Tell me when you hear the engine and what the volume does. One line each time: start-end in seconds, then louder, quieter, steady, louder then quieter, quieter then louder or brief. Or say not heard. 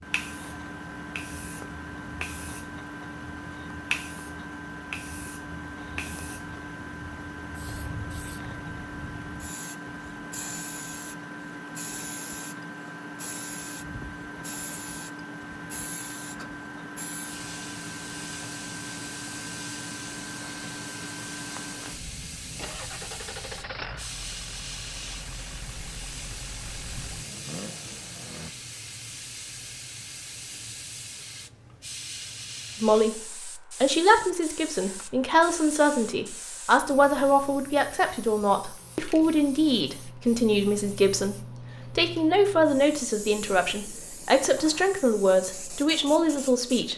0.0-28.5 steady.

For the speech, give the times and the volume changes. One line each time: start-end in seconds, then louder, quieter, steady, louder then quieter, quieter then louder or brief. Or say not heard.
32.8-33.2 brief
33.8-46.9 steady.